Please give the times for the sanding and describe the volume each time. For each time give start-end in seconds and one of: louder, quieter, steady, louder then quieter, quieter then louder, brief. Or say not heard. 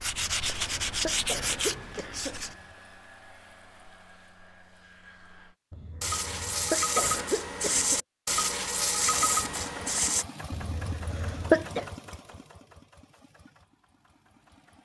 0.0-2.5 brief
6.0-10.2 steady.